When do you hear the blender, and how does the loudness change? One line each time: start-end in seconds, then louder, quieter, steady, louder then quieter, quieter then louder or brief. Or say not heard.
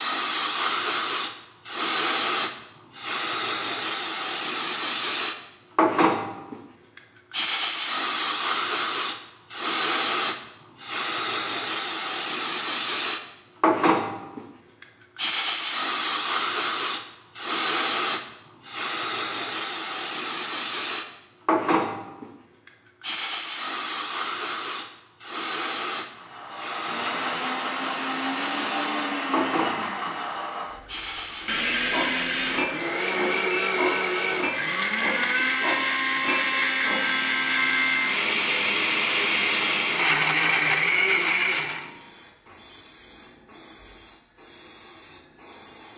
26.1-41.9 louder.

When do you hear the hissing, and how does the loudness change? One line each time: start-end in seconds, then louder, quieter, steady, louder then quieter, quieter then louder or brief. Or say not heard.
0.0-45.9 quieter.